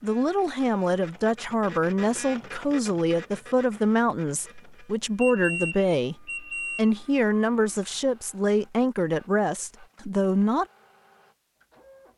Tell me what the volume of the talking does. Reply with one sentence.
The volume of the talking stays about the same.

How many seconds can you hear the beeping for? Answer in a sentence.
The beeping can be heard for 2 seconds in total.